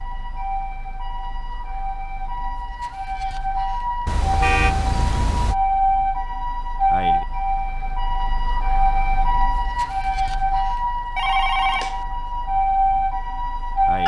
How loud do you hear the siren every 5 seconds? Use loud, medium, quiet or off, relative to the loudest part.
medium, loud, loud.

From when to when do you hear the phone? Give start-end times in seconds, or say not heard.
11.2-12.1.